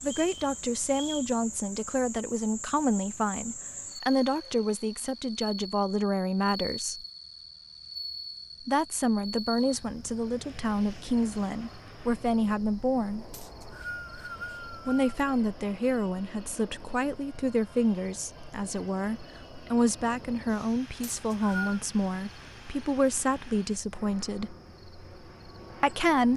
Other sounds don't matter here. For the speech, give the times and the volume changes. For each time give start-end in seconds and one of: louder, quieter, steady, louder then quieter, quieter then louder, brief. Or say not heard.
0.0-7.0 steady
8.7-13.3 quieter then louder
14.8-24.6 steady
25.8-26.3 brief.